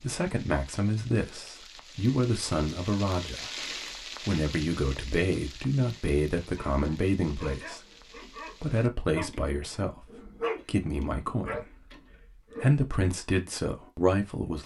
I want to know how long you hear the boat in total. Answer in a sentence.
The boat can't be heard in this clip.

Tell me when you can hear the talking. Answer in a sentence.
The talking can be heard from 0.0 to 7.8 s, from 8.6 to 11.9 s and from 12.6 to 14.6 s.